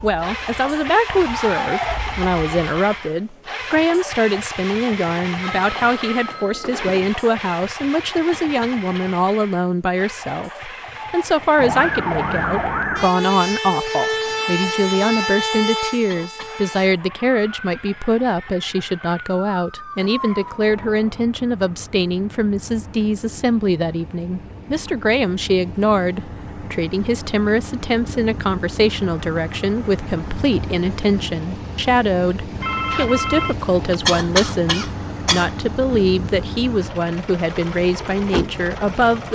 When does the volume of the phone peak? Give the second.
33 s.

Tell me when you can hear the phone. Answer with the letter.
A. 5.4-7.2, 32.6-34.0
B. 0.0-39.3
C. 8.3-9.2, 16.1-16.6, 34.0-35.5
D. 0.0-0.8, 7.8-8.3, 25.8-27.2
A.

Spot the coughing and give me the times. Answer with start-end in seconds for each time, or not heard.
8.3-9.2, 16.1-16.6, 34.0-35.5.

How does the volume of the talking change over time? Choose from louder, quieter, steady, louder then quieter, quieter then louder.
steady.